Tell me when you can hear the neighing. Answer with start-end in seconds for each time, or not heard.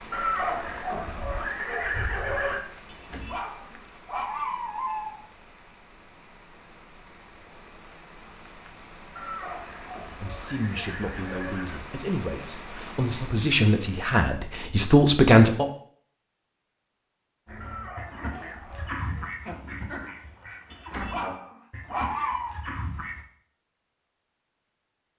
0.1-2.6, 9.2-11.8, 17.6-19.4.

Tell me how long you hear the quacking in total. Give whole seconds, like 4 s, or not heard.
6 s.